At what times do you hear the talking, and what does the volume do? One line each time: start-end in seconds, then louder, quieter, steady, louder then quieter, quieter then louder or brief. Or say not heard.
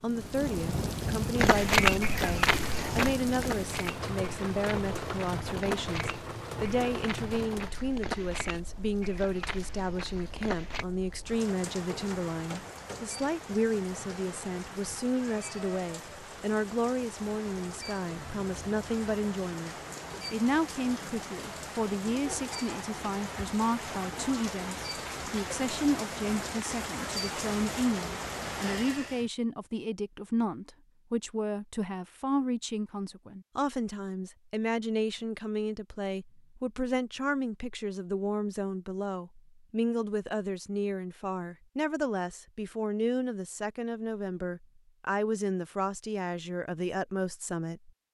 0.0-47.9 steady.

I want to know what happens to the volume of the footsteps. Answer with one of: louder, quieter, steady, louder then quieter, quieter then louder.
quieter.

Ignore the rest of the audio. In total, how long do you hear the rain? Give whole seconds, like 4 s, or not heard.
29 s.